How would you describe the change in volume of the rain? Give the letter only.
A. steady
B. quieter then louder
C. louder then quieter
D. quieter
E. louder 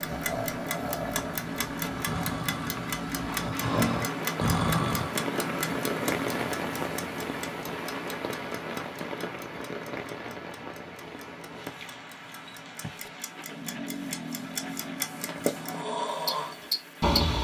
C.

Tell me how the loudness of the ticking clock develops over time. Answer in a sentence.
The loudness of the ticking clock goes down, then up.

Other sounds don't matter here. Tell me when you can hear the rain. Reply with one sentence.
You can hear the rain from 0.0 to 17.2 s.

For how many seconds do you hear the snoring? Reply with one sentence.
You can hear the snoring for 9 seconds altogether.